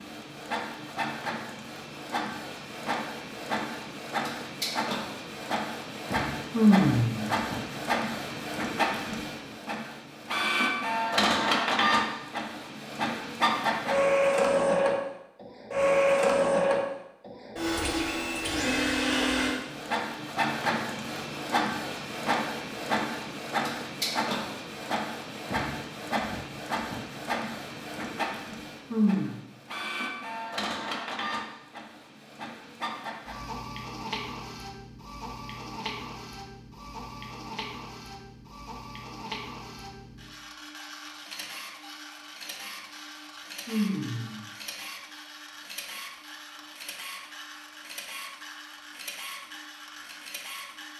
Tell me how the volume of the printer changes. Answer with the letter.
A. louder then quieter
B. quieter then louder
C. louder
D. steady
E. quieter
A.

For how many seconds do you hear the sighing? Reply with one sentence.
The sighing can be heard for 2 seconds in total.